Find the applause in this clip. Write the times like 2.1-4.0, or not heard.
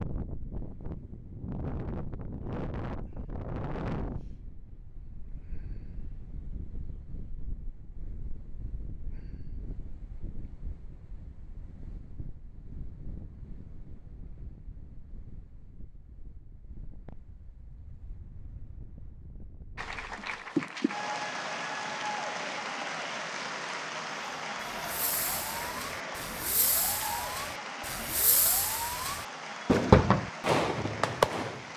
19.8-31.7.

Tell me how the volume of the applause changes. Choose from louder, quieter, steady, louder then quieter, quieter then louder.
quieter.